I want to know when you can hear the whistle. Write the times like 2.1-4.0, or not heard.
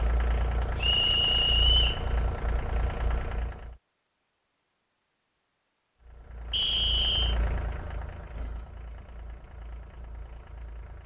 0.8-2.0, 6.5-7.3.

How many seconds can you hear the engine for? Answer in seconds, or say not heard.
9 s.